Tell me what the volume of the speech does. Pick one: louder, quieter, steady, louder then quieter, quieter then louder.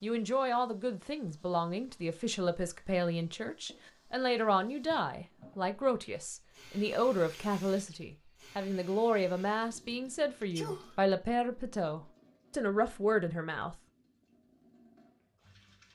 steady.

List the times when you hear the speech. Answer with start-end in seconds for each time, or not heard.
0.0-13.8.